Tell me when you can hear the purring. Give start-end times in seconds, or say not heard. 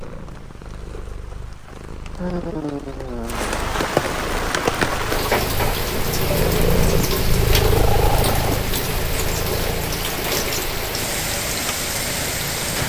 0.0-12.8.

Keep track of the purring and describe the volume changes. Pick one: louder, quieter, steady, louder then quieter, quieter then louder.
louder then quieter.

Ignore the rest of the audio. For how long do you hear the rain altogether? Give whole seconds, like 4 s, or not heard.
13 s.